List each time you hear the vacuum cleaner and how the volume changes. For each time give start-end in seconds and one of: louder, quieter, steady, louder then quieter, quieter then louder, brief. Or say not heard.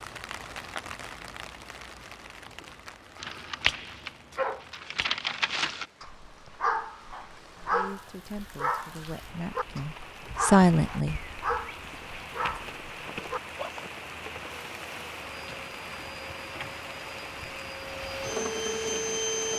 14.4-19.5 louder.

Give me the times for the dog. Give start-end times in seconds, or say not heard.
3.2-13.7.